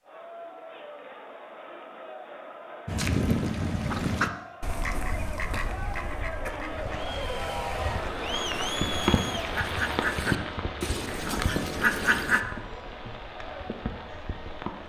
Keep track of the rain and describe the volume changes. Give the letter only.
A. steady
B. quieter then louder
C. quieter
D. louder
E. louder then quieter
E.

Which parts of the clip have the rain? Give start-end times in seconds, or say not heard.
6.7-14.8.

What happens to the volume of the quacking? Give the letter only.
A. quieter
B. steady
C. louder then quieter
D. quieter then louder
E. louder
D.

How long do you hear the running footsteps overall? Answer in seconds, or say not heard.
not heard.